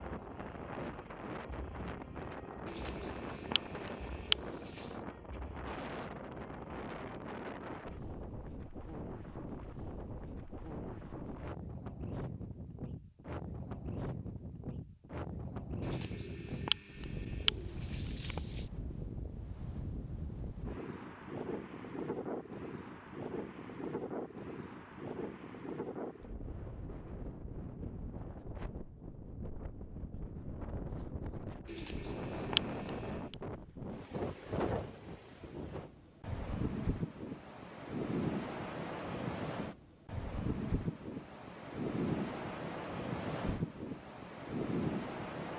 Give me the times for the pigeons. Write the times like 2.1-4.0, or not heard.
2.6-4.8, 15.8-18.6, 31.6-33.4.